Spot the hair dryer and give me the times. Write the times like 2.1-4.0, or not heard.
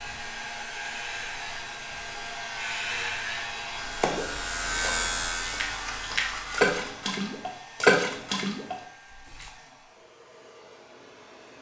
0.0-11.5.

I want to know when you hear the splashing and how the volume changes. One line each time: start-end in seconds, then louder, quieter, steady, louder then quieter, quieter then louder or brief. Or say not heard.
3.9-9.5 louder then quieter.